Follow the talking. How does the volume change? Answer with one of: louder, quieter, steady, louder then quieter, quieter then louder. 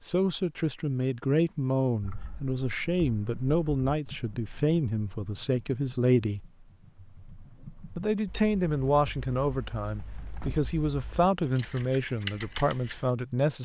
steady.